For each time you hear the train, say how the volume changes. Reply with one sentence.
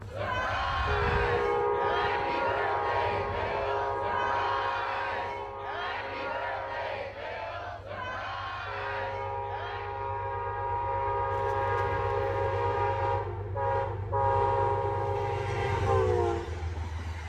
The train can be heard from 0.0 to 17.2 s, getting quieter then louder.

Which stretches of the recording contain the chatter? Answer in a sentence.
You can hear the chatter from 0.0 to 10.1 s.